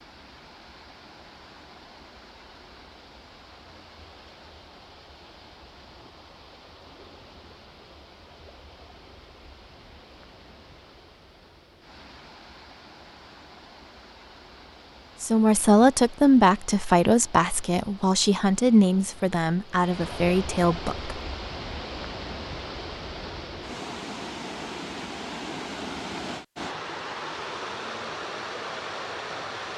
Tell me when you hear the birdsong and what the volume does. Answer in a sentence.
You can't hear the birdsong here.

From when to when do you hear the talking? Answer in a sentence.
You can hear the talking from 15.2 to 21.1 s.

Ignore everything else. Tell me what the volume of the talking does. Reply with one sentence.
The loudness of the talking goes down.